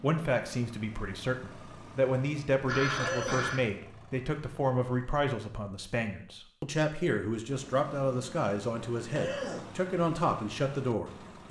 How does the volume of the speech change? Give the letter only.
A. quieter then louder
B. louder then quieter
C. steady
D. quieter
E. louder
C.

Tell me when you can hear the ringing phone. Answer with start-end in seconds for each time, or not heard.
2.6-3.6.